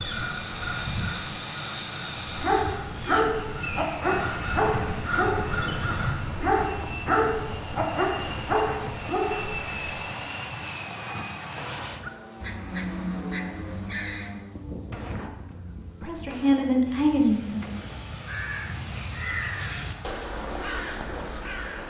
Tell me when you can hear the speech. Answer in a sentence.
You can hear the speech from 16.0 to 17.6 s.